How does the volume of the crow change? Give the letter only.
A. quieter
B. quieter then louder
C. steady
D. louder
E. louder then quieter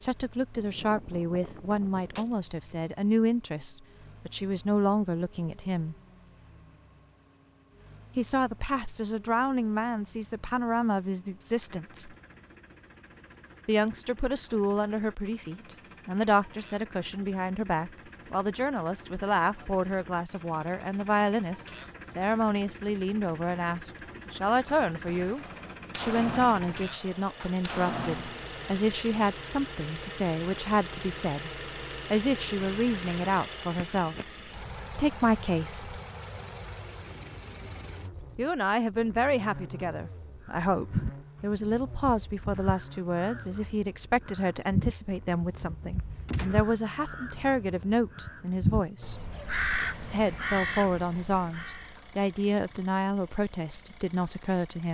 B.